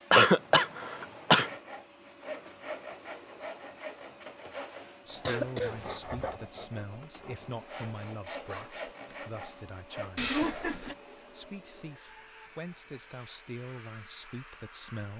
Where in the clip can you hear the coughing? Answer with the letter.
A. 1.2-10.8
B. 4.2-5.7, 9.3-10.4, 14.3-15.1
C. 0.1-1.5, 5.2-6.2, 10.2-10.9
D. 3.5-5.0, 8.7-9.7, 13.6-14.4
C.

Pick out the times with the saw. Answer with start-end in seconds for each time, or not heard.
1.2-10.8.